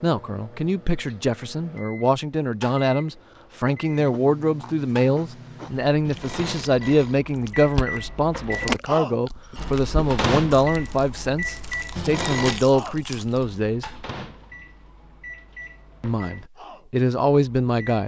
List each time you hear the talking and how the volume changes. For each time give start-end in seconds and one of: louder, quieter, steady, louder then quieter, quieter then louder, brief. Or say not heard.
0.0-13.9 steady
16.0-18.0 brief.